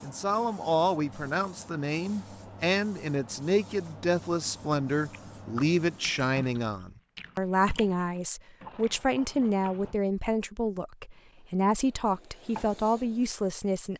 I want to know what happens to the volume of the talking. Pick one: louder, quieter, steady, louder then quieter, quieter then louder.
steady.